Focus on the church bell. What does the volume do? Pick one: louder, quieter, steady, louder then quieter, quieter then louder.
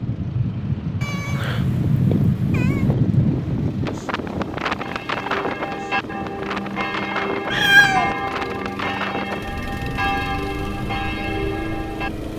steady.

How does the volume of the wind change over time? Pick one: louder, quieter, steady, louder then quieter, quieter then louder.
quieter.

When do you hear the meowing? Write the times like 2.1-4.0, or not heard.
1.0-2.9, 7.5-8.2.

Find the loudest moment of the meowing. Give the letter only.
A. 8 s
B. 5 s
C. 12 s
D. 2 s
A.